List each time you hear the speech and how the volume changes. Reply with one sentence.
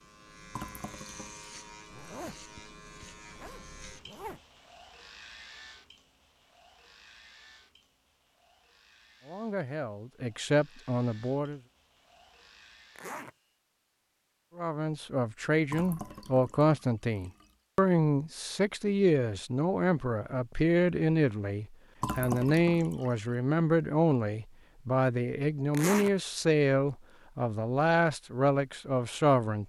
The speech can be heard briefly from 9.2 to 11.6 s; and from 14.6 to 29.6 s, at a steady volume.